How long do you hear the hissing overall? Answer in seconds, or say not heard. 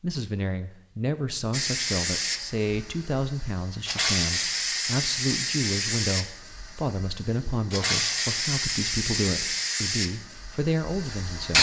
10 s.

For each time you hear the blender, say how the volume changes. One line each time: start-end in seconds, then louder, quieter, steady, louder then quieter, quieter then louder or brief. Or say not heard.
not heard.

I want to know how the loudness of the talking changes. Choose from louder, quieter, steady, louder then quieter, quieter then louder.
steady.